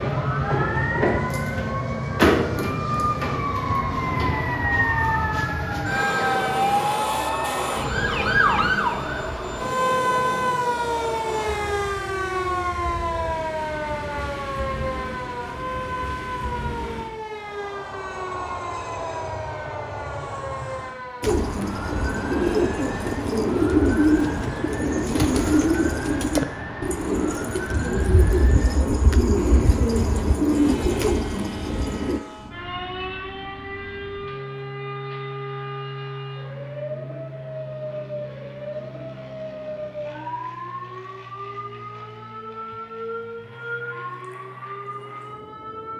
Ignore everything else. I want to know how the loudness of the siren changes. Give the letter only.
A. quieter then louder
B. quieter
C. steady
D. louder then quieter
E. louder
B.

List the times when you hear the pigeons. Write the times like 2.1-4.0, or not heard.
21.2-32.2.